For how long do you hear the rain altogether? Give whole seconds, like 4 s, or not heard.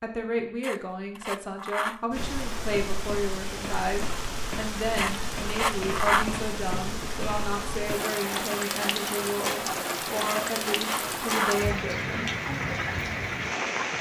12 s.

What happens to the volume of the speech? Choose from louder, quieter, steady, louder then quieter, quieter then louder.
steady.